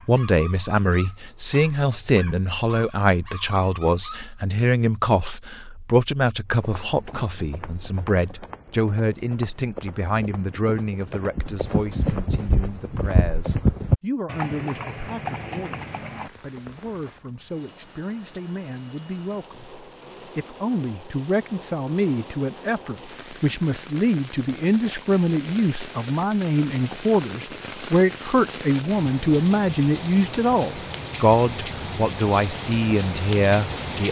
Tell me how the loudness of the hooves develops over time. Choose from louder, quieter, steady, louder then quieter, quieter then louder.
louder then quieter.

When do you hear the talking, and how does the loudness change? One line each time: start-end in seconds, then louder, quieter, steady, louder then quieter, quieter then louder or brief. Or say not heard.
0.1-34.0 quieter then louder.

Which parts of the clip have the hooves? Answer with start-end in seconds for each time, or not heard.
6.6-17.0.